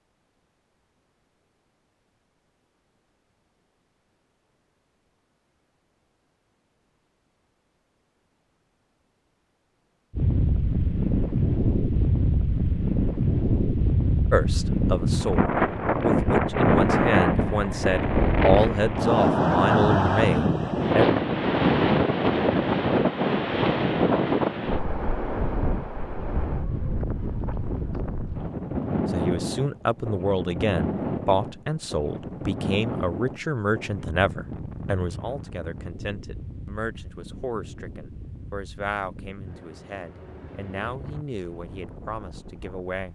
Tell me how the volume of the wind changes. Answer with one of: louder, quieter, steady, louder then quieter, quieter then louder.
quieter.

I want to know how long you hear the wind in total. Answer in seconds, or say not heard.
33 s.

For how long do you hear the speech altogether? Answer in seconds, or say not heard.
21 s.